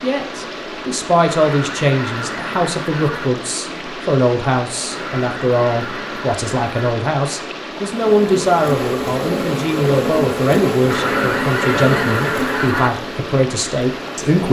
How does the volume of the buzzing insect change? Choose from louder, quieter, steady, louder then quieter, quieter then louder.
quieter.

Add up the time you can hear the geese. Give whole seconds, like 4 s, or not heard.
6 s.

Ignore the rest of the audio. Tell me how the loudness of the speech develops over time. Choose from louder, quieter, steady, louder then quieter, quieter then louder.
steady.